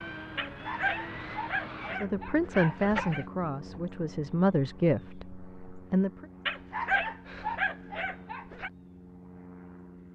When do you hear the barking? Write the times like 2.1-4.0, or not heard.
0.3-3.2, 6.5-8.7.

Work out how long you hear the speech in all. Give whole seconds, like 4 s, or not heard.
4 s.